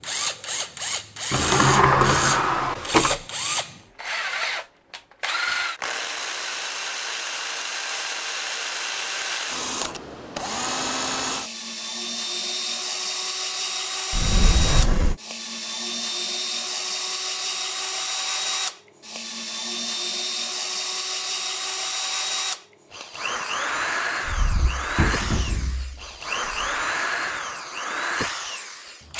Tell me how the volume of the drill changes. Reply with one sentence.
The volume of the drill stays about the same.